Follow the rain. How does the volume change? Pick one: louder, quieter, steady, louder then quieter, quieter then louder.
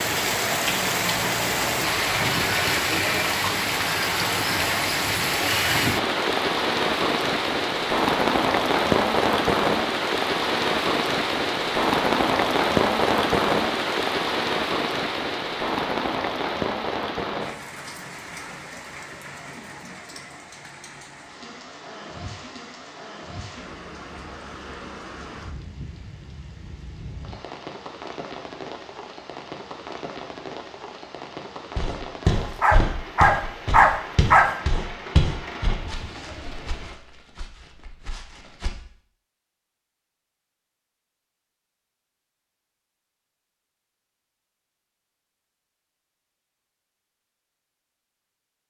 quieter.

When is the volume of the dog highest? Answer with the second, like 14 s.
34 s.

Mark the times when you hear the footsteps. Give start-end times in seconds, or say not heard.
31.8-38.7.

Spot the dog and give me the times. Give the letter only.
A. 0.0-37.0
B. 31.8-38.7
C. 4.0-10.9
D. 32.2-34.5
D.